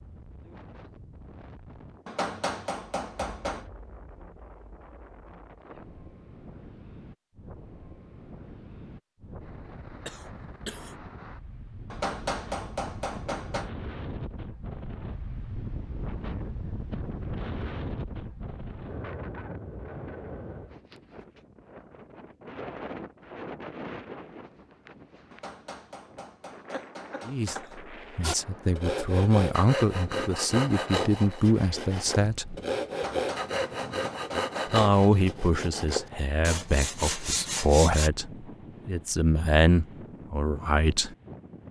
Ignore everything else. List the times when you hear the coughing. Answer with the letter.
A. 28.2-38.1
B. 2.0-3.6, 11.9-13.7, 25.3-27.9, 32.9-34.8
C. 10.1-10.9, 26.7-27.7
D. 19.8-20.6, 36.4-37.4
C.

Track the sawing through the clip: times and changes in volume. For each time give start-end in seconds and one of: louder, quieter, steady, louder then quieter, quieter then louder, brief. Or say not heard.
28.2-38.1 steady.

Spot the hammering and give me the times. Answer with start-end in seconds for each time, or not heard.
2.0-3.6, 11.9-13.7, 25.3-27.9, 32.9-34.8.